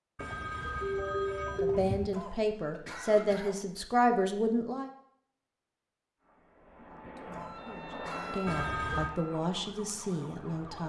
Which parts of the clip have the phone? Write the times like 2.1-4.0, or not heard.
0.1-2.1, 8.4-9.1.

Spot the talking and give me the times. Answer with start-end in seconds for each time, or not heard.
1.6-4.9, 7.1-10.8.